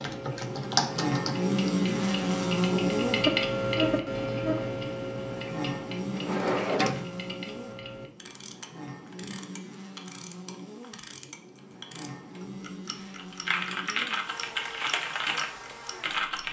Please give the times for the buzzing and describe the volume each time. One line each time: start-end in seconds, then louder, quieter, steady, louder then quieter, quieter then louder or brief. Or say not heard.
0.0-16.2 quieter.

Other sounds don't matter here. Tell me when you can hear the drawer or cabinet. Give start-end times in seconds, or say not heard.
6.1-7.0.